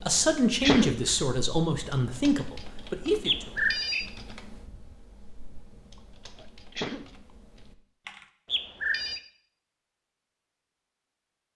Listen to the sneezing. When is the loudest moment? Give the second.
1 s.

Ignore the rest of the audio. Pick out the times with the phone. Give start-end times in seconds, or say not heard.
3.2-4.1, 8.4-9.2.